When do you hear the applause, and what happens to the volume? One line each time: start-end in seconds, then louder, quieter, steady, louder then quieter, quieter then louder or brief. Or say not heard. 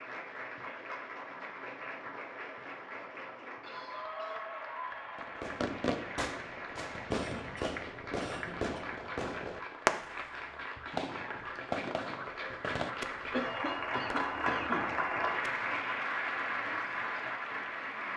0.0-18.1 louder.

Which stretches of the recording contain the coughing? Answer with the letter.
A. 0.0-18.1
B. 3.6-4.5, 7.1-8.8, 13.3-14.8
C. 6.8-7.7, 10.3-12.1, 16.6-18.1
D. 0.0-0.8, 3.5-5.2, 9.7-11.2
B.